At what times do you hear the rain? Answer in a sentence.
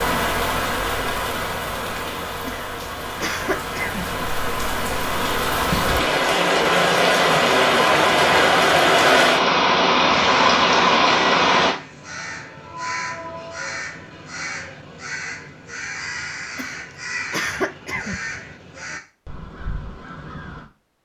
The rain can be heard from 0.0 to 11.8 s.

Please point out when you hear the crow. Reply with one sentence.
You can hear the crow from 10.3 to 20.6 s.